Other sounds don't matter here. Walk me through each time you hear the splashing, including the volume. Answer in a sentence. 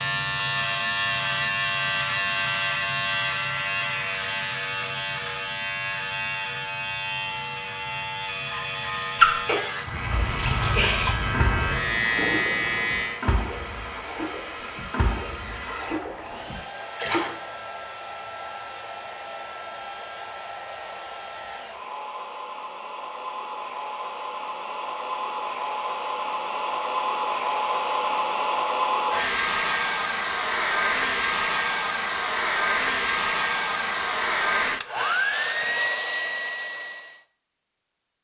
You can hear the splashing from 9.2 to 17.4 s, getting quieter.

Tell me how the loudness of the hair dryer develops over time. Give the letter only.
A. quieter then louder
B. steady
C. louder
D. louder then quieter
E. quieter
C.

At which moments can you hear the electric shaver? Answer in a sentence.
The electric shaver can be heard from 0.0 to 13.2 s.